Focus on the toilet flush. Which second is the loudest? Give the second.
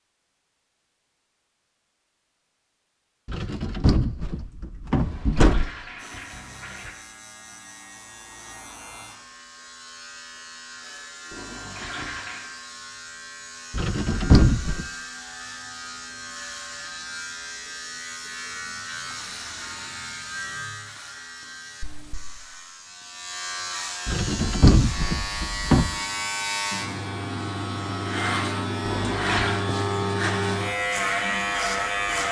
29 s.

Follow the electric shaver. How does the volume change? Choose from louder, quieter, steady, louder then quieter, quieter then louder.
louder.